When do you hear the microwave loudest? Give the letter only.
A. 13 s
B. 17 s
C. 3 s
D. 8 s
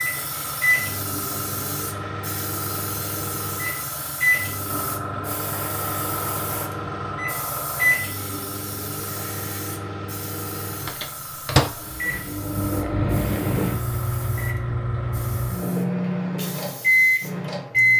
B.